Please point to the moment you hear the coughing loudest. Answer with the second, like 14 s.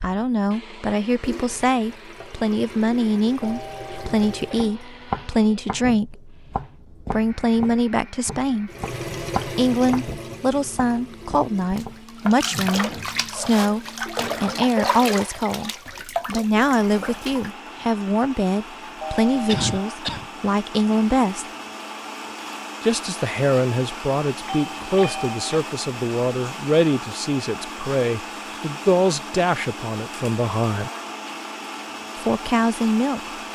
20 s.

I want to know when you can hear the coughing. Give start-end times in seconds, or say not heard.
4.3-5.2, 19.4-20.3.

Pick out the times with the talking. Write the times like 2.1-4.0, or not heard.
0.0-6.5, 7.1-8.7, 9.6-21.4, 22.8-30.9, 32.1-33.3.